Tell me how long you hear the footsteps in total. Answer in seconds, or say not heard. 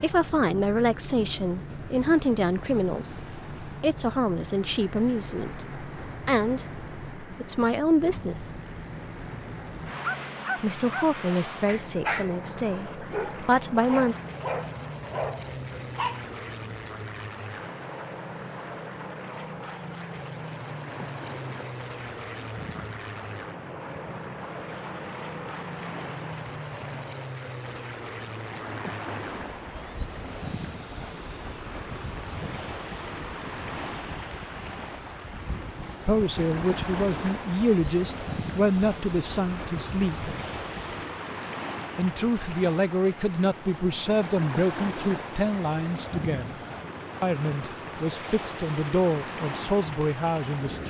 not heard.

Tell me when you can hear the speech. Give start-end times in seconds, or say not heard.
0.0-8.6, 10.6-14.2, 36.0-40.3, 42.0-46.6, 47.2-50.8.